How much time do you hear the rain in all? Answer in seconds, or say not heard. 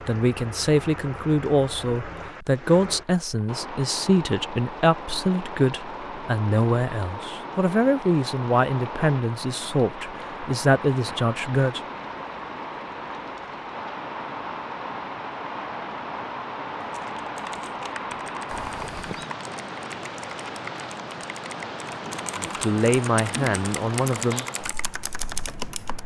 26 s.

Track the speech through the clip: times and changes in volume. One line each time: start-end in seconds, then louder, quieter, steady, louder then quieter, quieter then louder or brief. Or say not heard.
0.1-11.8 steady
22.4-24.4 brief.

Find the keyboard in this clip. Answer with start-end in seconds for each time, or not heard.
16.8-26.0.